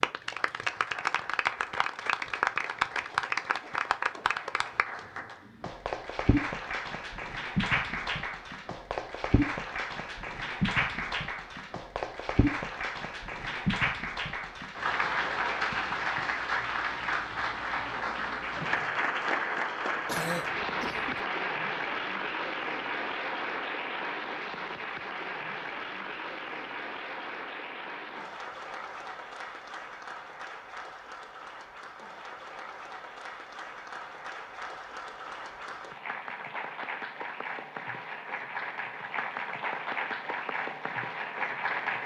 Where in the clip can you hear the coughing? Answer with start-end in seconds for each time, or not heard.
20.1-21.2.